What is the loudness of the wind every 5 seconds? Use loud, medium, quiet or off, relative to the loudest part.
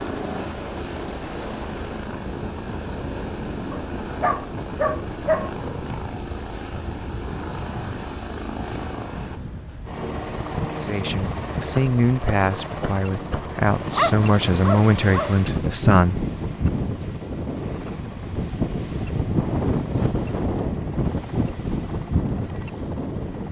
medium, medium, medium, loud, loud.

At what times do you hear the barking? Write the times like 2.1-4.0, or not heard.
3.7-5.5, 13.8-15.4.